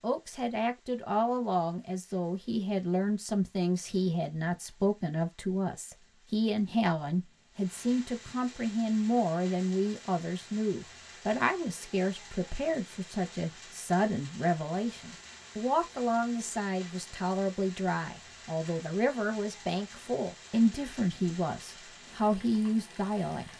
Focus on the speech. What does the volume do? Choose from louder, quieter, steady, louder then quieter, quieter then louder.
steady.